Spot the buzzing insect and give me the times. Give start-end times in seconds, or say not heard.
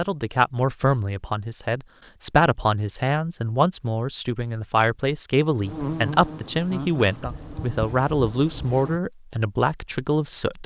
5.6-9.0.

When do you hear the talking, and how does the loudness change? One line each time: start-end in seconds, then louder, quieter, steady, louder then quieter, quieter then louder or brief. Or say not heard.
0.0-10.6 steady.